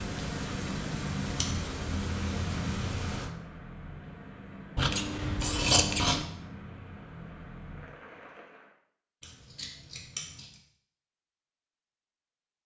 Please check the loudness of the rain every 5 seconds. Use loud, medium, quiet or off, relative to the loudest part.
loud, medium, off.